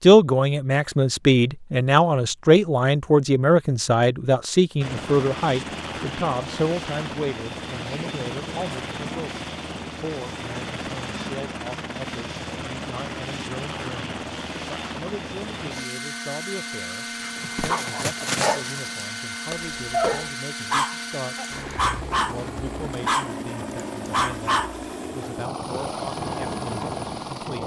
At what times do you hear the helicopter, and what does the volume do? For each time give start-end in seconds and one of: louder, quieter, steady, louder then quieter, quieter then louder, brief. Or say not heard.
4.8-27.6 steady.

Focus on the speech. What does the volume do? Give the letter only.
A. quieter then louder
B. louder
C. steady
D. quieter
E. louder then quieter
D.